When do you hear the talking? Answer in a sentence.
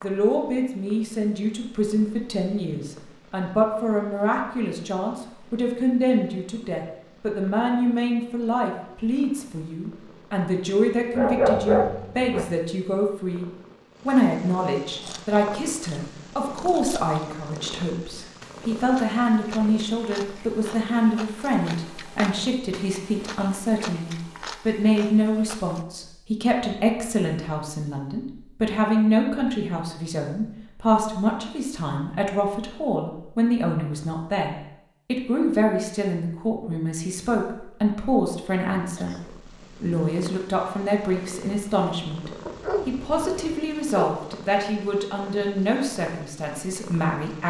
You can hear the talking from 0.0 to 13.4 s and from 14.1 to 47.4 s.